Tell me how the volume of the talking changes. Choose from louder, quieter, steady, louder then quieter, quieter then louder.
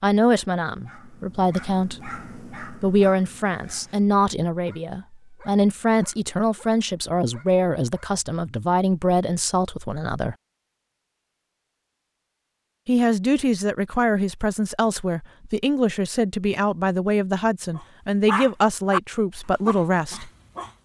steady.